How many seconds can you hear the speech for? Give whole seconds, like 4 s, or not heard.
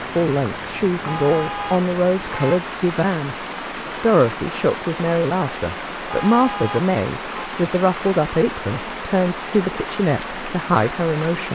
11 s.